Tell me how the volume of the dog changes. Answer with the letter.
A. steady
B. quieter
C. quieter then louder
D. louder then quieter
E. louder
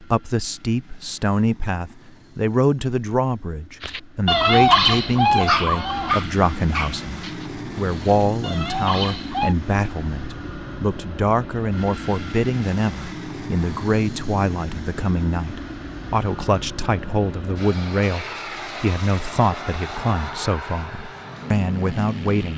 C.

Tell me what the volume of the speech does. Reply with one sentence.
The loudness of the speech stays about the same.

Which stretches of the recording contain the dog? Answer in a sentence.
You can hear the dog from 3.8 to 9.6 s.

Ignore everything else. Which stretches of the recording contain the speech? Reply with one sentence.
The speech can be heard from 0.0 to 22.5 s.